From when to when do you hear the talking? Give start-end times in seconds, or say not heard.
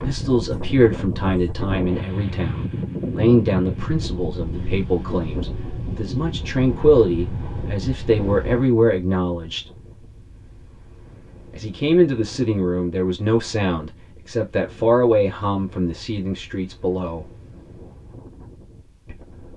0.0-9.7, 11.5-17.2.